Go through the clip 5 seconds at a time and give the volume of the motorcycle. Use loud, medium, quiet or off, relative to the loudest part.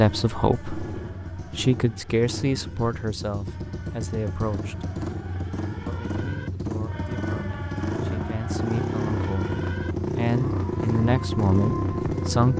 medium, loud, loud.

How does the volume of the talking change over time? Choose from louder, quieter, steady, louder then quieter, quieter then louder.
quieter then louder.